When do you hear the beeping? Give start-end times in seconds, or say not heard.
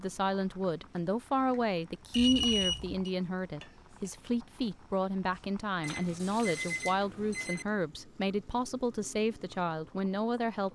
2.1-3.1, 5.8-7.7.